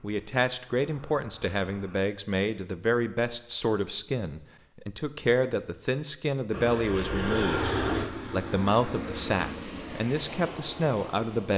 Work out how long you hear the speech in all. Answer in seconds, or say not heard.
11 s.